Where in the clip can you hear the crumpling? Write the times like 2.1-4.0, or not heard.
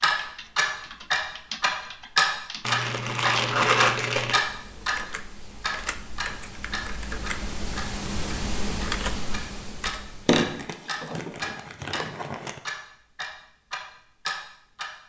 2.6-4.5, 10.2-12.6.